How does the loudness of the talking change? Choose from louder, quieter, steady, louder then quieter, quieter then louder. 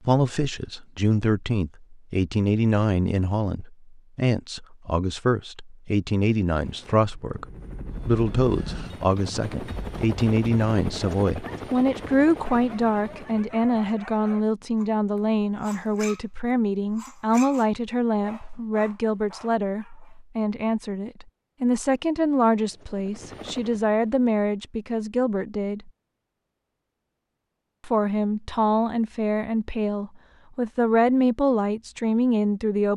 steady.